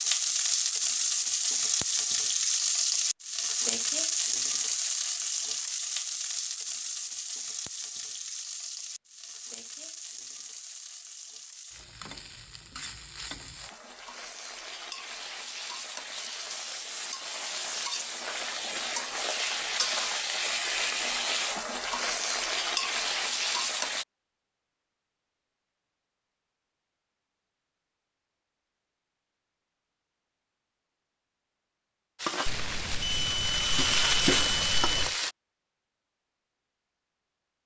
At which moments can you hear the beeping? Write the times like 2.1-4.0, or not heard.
32.5-35.1.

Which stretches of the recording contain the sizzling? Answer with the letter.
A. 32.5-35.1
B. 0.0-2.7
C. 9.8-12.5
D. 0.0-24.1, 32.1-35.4
D.